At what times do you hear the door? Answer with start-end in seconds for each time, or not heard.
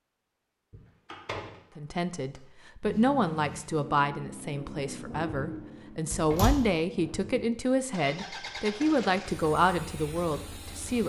0.7-2.4, 6.1-6.7.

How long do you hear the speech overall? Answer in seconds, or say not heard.
9 s.